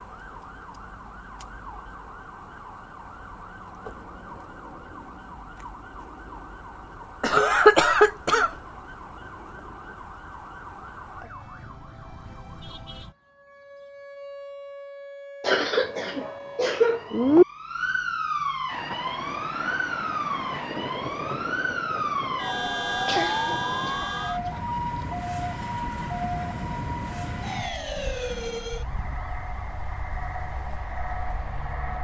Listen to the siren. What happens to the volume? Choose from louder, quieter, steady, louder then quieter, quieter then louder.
louder then quieter.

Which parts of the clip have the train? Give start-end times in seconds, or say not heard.
18.7-32.0.